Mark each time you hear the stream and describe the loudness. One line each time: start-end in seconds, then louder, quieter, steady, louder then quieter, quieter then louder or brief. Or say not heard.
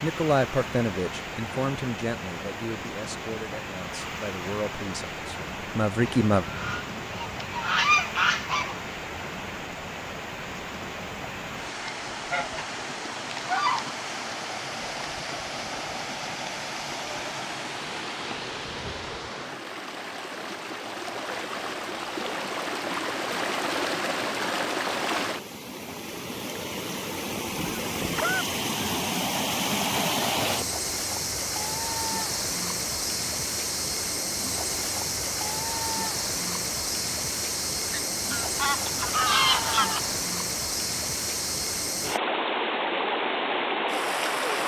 0.0-44.6 louder.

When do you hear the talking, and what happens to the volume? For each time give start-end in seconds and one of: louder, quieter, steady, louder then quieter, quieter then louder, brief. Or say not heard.
0.0-6.5 quieter then louder.